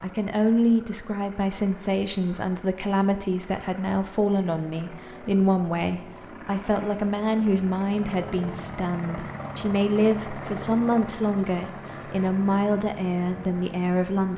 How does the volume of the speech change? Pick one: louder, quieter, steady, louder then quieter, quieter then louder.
steady.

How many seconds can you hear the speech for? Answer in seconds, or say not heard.
14 s.